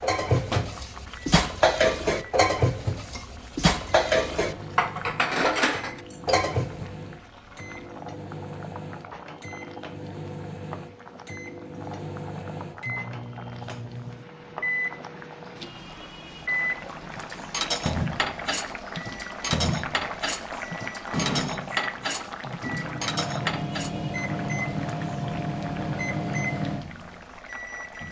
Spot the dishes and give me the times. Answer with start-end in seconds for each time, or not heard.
0.0-6.9, 17.1-23.9.